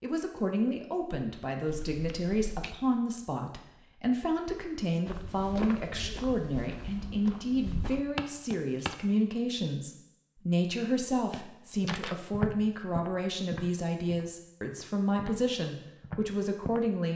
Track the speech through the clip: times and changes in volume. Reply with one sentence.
You can hear the speech from 0.0 to 17.1 s, at a steady volume.